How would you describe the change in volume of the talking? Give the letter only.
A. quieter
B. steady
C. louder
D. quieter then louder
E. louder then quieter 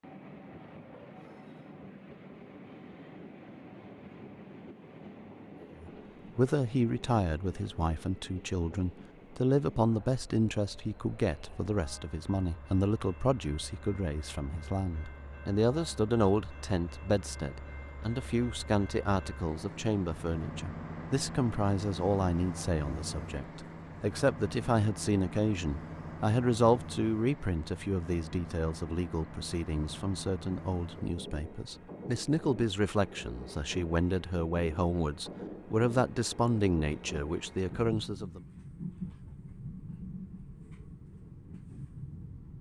B.